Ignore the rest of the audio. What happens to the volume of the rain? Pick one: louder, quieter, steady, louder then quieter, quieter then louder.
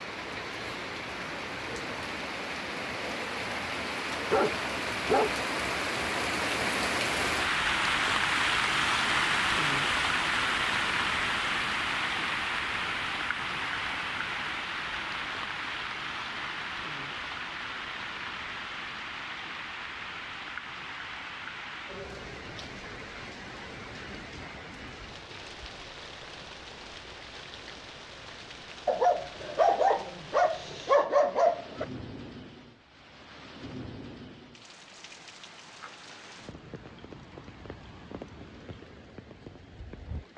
quieter.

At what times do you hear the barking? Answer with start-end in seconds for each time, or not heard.
3.8-5.3, 28.9-31.9.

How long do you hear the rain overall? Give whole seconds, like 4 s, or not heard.
40 s.